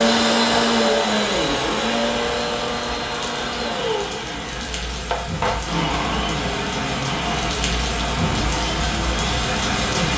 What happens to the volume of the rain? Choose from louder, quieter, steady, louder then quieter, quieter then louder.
louder.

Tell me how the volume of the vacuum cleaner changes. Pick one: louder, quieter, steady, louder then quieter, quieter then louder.
quieter.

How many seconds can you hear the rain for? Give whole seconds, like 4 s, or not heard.
10 s.